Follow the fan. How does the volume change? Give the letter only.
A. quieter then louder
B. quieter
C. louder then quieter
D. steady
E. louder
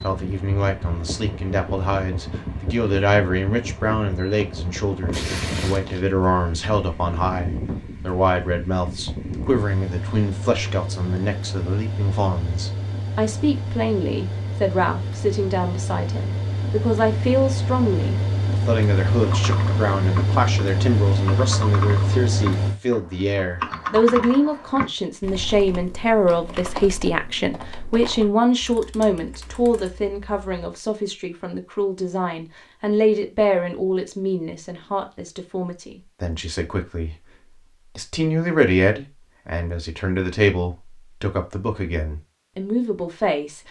E.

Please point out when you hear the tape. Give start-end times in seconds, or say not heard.
5.1-6.0.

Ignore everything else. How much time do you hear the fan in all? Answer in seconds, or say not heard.
23 s.